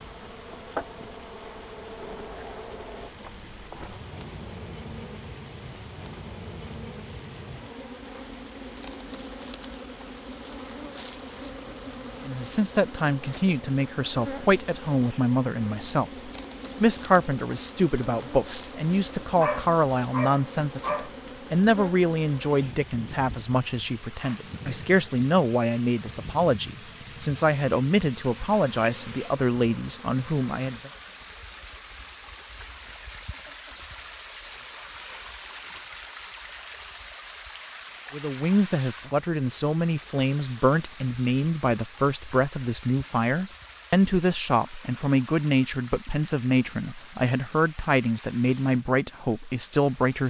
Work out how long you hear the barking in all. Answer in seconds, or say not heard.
2 s.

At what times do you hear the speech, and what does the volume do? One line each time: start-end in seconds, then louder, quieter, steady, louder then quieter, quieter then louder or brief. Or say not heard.
12.2-30.9 steady
38.1-50.2 steady.